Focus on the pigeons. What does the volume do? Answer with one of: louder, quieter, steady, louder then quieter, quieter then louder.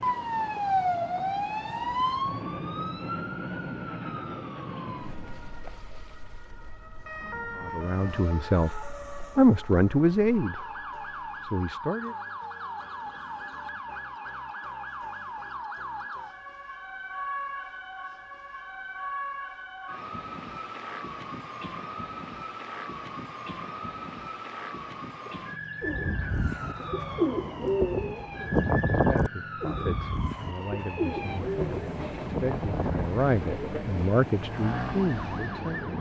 louder then quieter.